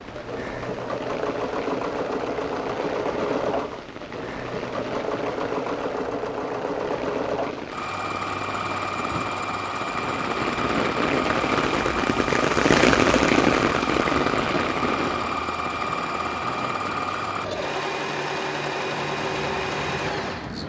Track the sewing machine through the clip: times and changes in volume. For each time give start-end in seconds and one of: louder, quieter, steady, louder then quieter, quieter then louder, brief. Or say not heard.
0.0-20.6 steady.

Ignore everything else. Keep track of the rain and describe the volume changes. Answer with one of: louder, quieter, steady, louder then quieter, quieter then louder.
louder then quieter.